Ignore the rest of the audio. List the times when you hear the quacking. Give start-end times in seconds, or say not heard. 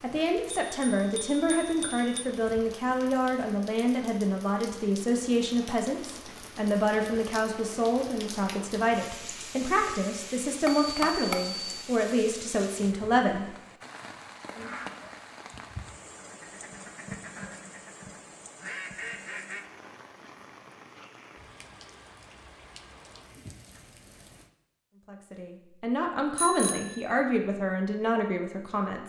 14.5-19.6.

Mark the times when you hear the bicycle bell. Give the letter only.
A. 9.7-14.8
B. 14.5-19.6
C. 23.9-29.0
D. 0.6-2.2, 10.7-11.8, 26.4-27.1
D.